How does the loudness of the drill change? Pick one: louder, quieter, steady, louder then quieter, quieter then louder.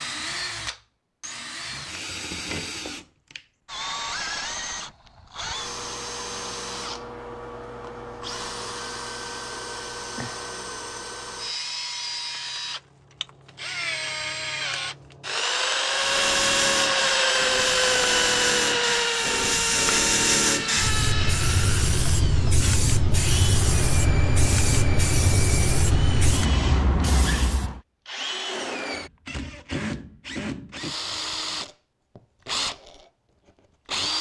louder then quieter.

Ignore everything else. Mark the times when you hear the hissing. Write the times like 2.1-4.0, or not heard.
15.9-27.8.